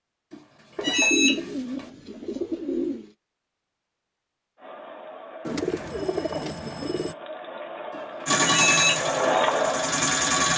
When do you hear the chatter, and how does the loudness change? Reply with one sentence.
You can hear the chatter from 4.5 to 10.5 s, getting louder.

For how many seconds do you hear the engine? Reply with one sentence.
You can hear the engine for 2 seconds altogether.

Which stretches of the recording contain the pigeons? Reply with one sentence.
You can hear the pigeons from 0.8 to 3.1 s and from 5.5 to 7.2 s.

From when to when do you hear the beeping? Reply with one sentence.
You can hear the beeping from 0.3 to 1.4 s and from 8.0 to 8.9 s.